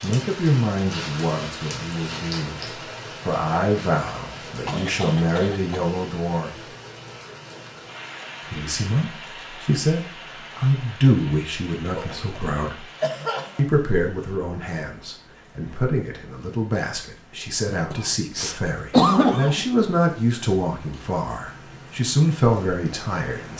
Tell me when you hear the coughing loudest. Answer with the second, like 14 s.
19 s.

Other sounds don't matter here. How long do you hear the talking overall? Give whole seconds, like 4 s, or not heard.
21 s.